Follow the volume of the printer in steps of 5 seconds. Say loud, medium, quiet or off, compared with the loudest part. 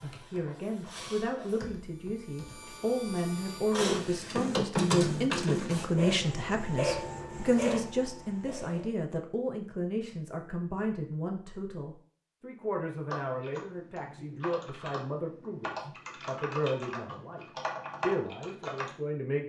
loud, loud, off, off.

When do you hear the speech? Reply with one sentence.
The speech can be heard from 0.0 to 19.4 s.